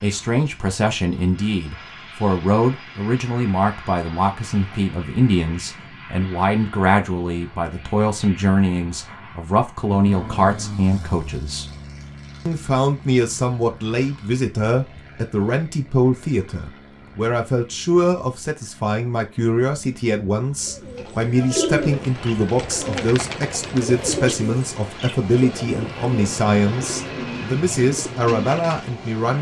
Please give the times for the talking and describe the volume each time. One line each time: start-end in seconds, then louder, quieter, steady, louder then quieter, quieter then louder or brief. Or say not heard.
0.0-11.7 steady
12.4-29.3 steady.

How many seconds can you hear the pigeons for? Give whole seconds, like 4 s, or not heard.
8 s.